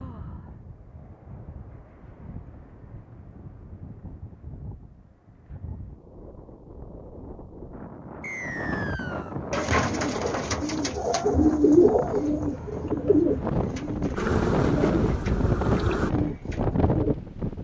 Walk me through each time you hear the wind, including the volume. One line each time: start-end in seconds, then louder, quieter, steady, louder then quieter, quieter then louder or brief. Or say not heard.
0.0-17.5 louder.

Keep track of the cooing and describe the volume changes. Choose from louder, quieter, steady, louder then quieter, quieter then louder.
louder then quieter.